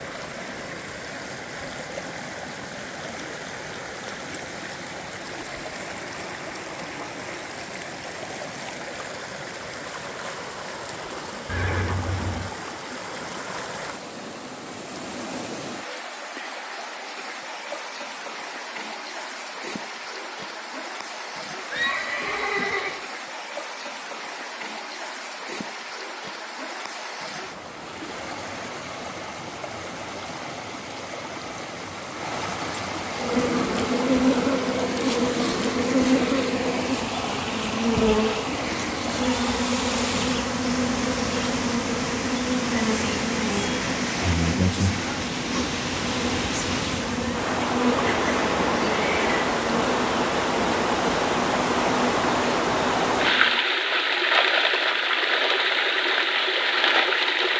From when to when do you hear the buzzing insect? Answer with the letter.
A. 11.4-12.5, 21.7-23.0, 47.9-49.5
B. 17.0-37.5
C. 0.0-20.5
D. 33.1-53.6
D.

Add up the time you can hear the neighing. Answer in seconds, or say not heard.
4 s.